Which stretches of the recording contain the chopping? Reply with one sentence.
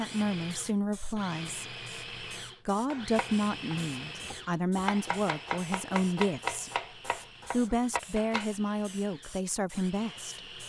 You can hear the chopping from 2.9 to 8.5 s.